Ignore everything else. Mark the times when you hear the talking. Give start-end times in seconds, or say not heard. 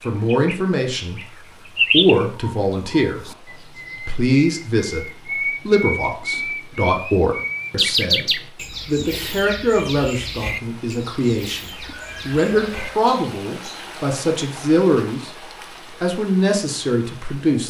0.1-1.2, 1.9-15.3, 15.9-17.6.